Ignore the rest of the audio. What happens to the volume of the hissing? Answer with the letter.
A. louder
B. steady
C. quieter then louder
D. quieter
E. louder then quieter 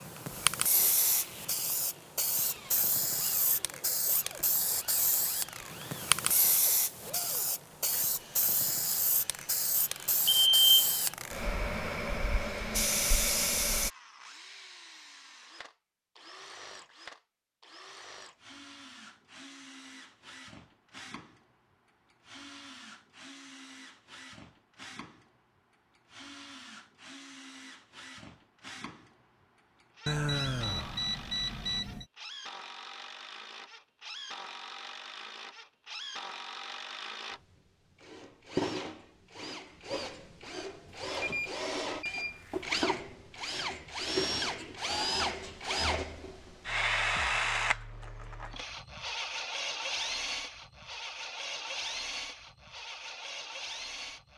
B.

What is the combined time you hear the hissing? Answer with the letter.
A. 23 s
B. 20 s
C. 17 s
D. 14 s
D.